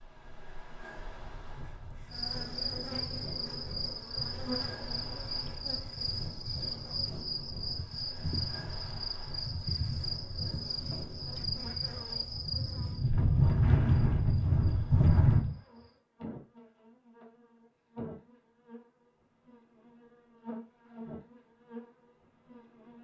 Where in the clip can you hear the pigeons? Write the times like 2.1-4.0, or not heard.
not heard.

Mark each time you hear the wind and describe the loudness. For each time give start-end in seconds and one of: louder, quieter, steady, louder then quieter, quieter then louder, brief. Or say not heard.
0.0-15.6 louder.